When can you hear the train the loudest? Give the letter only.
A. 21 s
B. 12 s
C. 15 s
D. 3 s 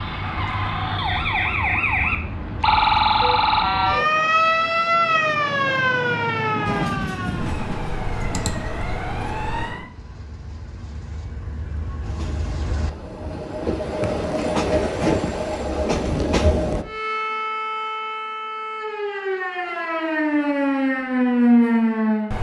C.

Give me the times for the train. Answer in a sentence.
The train can be heard from 6.7 to 16.9 s.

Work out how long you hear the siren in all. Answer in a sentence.
You can hear the siren for 15 seconds altogether.